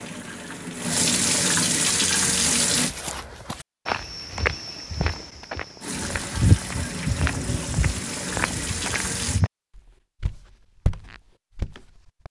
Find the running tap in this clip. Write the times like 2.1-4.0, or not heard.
0.0-3.0, 5.8-9.4.